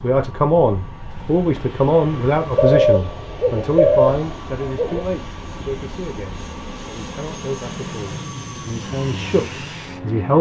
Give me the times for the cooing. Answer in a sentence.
The cooing can be heard from 2.5 to 5.0 s.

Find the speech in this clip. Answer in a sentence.
The speech can be heard from 0.0 to 10.3 s.